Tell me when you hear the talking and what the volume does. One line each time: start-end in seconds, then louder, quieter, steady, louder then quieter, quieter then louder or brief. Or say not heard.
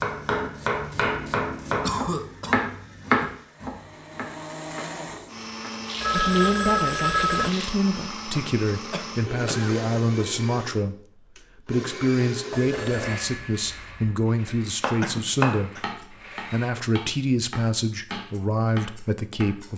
6.1-19.7 steady.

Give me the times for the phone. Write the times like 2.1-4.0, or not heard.
6.0-7.5, 12.5-14.2.